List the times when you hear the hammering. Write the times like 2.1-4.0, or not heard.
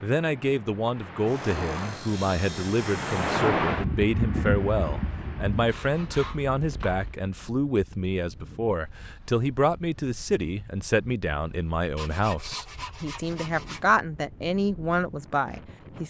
not heard.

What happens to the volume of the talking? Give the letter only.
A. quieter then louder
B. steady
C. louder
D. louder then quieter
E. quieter
B.